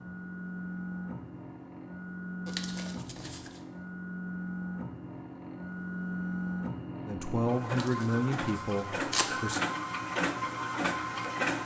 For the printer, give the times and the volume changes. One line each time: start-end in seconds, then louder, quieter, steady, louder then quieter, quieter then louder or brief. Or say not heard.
0.0-11.6 louder.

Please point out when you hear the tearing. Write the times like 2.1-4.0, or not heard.
2.5-3.6, 7.7-9.3.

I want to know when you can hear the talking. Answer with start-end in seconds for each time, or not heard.
7.0-9.6.